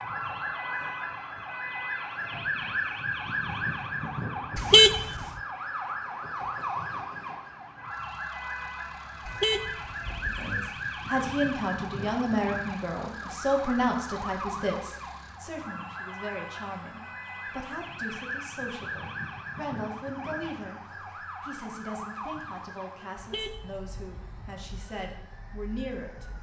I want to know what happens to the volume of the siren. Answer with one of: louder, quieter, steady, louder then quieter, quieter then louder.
quieter.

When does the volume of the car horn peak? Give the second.
5 s.